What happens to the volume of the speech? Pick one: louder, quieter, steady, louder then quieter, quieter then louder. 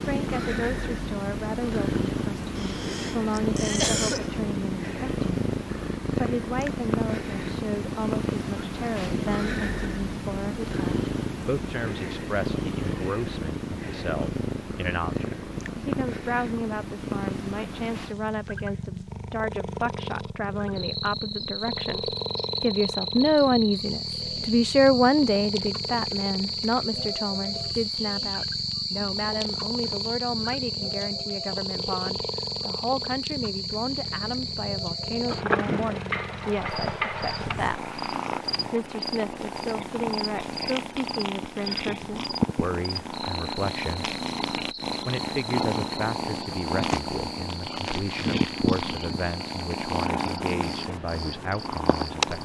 louder then quieter.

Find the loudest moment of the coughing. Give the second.
4 s.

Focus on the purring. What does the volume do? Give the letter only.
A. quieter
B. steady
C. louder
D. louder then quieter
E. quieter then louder
E.